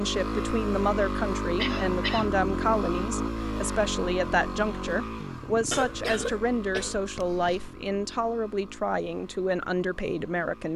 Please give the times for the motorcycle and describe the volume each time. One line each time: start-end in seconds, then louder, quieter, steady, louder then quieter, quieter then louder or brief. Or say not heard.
0.0-10.7 quieter.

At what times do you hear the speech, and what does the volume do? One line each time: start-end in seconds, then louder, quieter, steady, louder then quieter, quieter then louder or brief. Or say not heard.
0.0-10.7 steady.